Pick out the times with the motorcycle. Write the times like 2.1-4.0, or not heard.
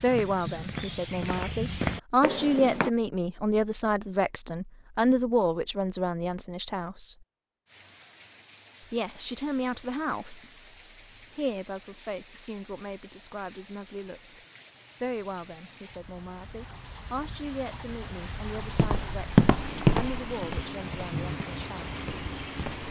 not heard.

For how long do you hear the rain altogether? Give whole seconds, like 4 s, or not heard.
15 s.